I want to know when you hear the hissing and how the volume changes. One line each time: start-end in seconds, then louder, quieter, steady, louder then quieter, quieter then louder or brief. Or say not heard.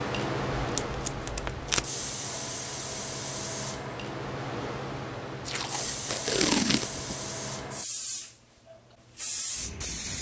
0.0-10.1 steady.